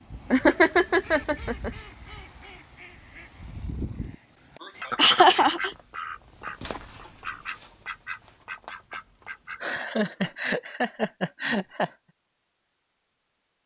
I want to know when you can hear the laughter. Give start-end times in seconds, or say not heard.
0.3-1.7, 5.0-5.7, 9.6-11.9.